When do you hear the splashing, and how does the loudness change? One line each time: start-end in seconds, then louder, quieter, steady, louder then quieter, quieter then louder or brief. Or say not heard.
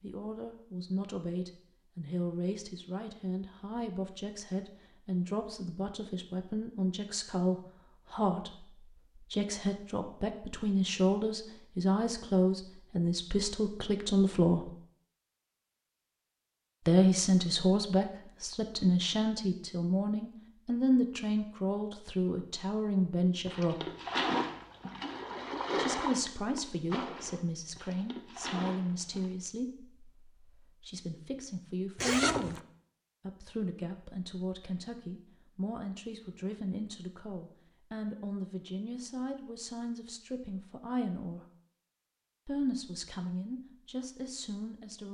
23.4-29.3 quieter.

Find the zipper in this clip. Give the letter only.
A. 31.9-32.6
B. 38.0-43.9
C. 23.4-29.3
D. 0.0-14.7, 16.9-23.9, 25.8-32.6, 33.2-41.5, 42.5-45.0
A.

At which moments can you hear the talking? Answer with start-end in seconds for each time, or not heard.
0.0-14.7, 16.9-23.9, 25.8-32.6, 33.2-41.5, 42.5-45.0.